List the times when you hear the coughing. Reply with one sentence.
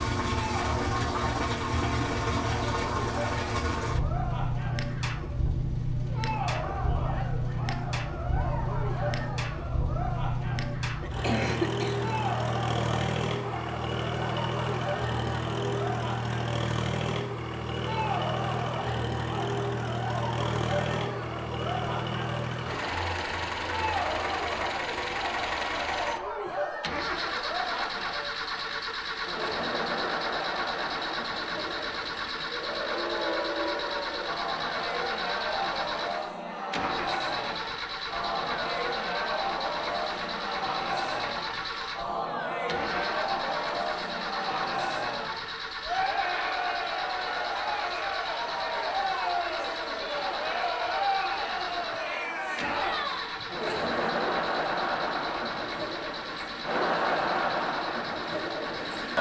You can hear the coughing from 11.0 to 12.1 s.